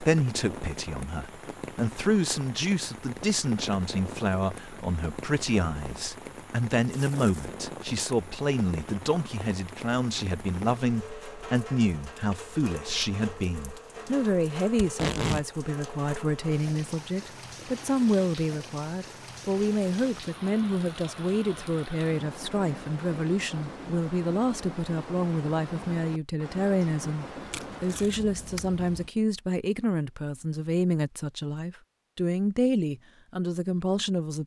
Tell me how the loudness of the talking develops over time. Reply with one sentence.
The volume of the talking stays about the same.